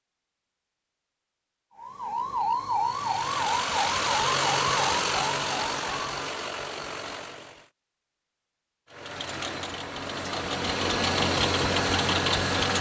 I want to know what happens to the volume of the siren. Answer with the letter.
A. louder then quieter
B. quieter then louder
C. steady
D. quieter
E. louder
D.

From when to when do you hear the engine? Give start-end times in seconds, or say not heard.
2.8-7.7, 8.9-12.7.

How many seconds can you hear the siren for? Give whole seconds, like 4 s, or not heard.
4 s.